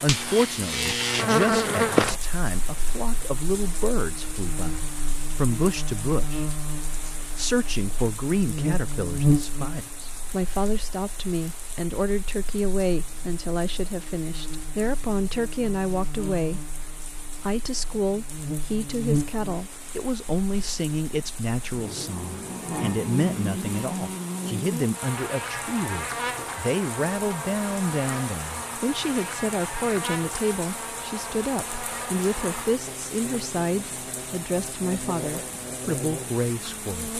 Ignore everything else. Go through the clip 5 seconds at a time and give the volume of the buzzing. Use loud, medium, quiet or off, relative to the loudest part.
loud, loud, quiet, medium, medium, medium, medium, medium.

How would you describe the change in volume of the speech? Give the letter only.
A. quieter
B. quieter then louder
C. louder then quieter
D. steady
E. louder
D.